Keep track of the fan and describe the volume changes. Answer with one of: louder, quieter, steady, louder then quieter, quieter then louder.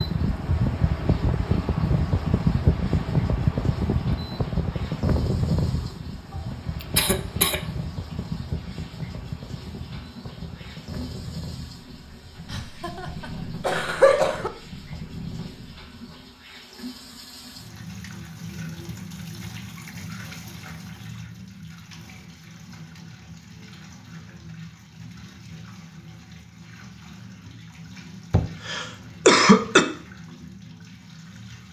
quieter.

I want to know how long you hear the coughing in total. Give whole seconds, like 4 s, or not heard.
4 s.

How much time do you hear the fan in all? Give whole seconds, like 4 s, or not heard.
16 s.